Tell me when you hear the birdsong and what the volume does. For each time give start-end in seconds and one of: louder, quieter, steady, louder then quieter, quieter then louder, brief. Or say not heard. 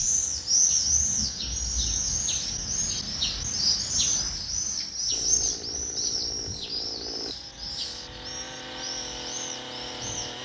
0.0-10.4 quieter.